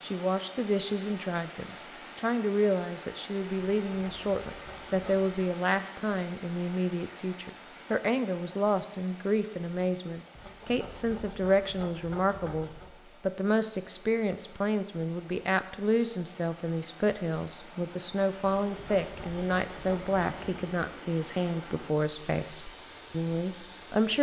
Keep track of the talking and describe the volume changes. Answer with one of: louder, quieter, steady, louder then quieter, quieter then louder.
steady.